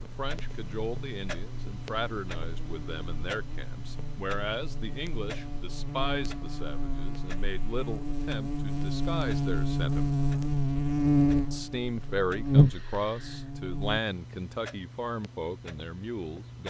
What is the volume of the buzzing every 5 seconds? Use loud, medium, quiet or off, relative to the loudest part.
quiet, medium, loud, off.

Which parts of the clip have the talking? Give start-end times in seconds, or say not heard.
0.0-10.2, 11.5-16.6.